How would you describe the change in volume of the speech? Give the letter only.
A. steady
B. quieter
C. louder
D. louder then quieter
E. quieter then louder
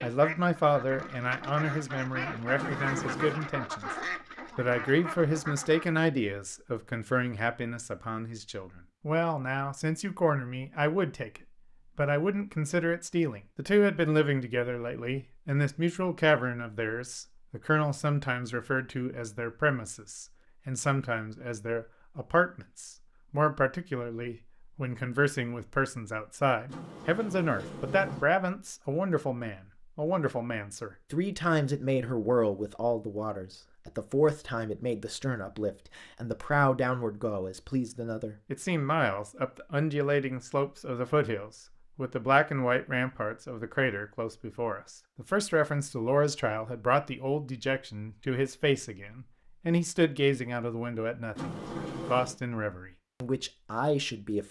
A.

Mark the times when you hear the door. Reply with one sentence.
The door can be heard from 2.5 to 3.4 s, from 26.6 to 28.2 s and from 51.4 to 52.4 s.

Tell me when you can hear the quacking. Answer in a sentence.
The quacking can be heard from 0.0 to 6.0 s.